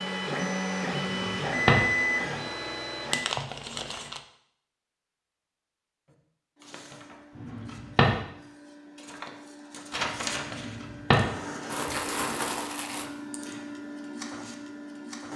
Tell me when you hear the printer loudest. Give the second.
2 s.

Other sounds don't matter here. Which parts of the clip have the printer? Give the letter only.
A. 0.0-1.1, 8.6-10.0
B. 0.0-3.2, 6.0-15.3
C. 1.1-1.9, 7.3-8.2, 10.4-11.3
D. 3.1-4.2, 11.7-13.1
B.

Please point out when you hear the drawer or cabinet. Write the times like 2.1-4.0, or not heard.
1.1-1.9, 7.3-8.2, 10.4-11.3.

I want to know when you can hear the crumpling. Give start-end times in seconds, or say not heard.
3.1-4.2, 11.7-13.1.